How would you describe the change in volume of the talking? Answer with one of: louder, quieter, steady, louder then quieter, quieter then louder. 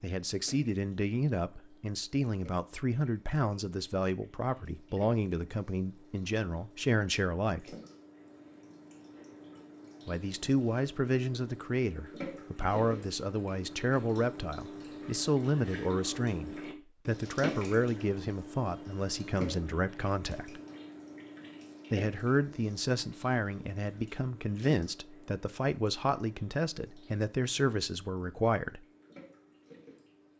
steady.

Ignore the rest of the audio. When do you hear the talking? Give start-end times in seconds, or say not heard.
0.0-7.8, 10.1-20.6, 21.9-28.9.